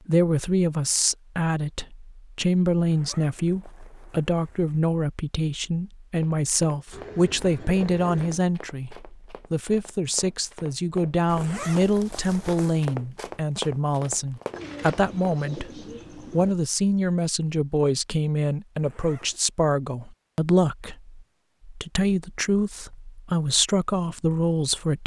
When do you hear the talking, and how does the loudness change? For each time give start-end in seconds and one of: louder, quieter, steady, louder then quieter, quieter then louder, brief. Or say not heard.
0.1-25.0 steady.